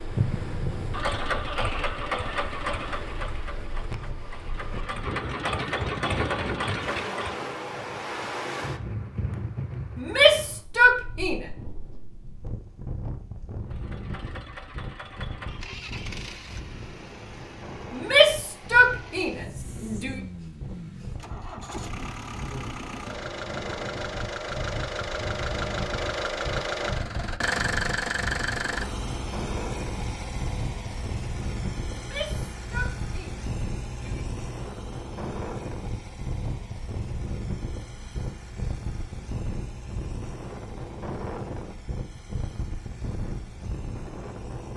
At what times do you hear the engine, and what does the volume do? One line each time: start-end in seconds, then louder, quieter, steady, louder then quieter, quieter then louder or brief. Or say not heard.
0.0-7.5 quieter then louder
13.7-44.7 louder then quieter.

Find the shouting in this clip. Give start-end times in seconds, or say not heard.
9.9-11.4, 17.9-20.1, 31.9-34.2.